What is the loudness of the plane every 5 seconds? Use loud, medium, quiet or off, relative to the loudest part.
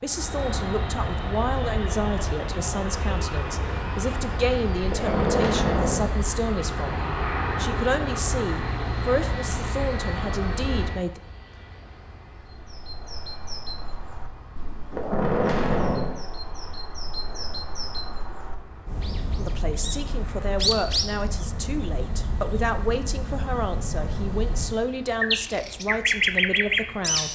loud, loud, medium, quiet, quiet, quiet.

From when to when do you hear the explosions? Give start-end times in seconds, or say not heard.
4.8-6.2, 14.9-16.2.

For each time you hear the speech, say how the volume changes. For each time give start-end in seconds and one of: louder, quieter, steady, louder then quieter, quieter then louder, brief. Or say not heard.
0.0-11.2 steady
19.4-27.3 steady.